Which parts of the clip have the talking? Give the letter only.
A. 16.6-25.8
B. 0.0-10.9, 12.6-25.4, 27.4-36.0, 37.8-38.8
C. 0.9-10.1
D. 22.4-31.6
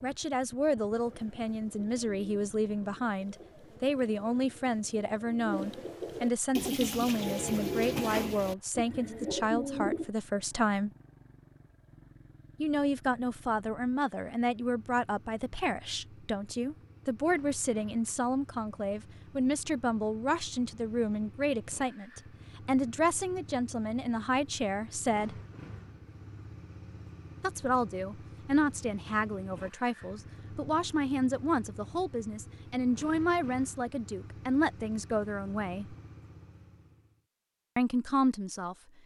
B.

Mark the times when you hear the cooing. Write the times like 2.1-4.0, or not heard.
0.9-10.1.